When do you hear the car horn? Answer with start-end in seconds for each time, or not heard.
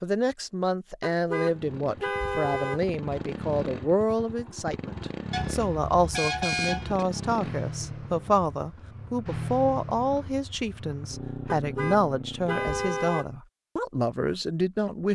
1.0-2.8, 5.3-7.0, 11.4-13.3.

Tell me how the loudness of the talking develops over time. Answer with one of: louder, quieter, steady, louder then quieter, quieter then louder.
steady.